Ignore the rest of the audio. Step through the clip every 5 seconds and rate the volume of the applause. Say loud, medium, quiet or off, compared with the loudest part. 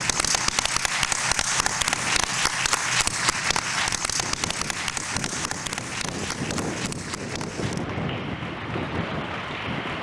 loud, medium.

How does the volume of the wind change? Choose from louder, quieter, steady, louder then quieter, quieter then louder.
louder.